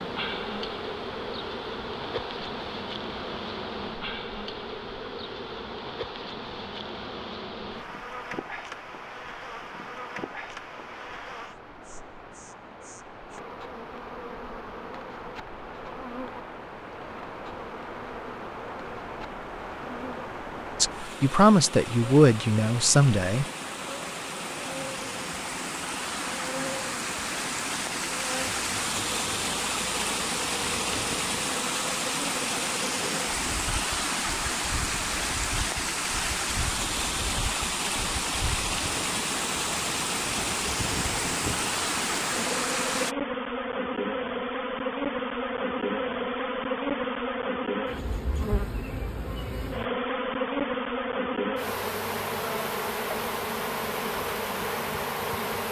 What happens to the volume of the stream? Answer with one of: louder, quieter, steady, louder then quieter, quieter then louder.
louder.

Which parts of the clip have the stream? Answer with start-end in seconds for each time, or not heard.
0.0-43.1.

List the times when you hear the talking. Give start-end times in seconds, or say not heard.
20.8-23.4.